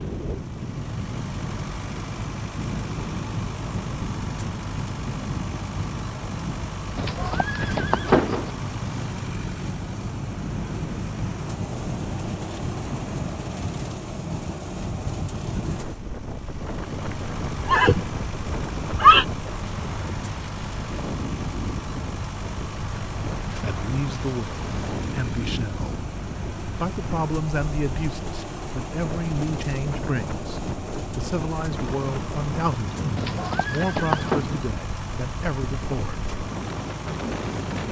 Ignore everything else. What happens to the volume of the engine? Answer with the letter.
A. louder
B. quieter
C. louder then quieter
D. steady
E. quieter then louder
D.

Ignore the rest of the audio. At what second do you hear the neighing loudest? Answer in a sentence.
The volume of the neighing peaks at 19 seconds.